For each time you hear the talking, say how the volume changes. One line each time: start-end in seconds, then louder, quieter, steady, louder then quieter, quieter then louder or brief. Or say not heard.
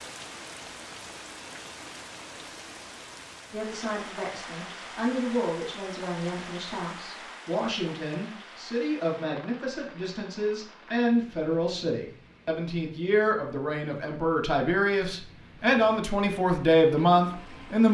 3.5-17.8 louder.